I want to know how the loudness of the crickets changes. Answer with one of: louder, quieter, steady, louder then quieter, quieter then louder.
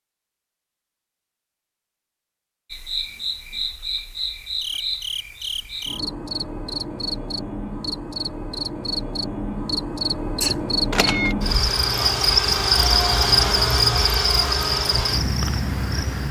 louder.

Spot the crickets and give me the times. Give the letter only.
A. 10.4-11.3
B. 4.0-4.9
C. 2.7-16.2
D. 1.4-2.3
C.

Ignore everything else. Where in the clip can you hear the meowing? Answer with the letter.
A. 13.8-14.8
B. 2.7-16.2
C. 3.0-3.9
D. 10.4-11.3
D.